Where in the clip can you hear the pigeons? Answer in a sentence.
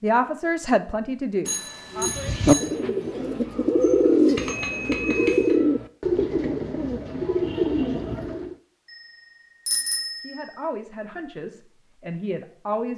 You can hear the pigeons from 1.9 to 8.6 s.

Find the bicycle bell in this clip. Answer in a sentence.
The bicycle bell can be heard from 1.4 to 2.7 s, from 4.3 to 5.5 s and from 9.7 to 10.4 s.